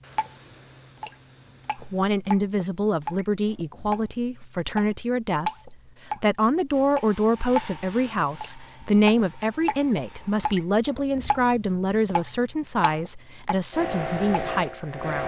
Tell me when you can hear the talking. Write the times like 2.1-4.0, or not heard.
1.8-15.2.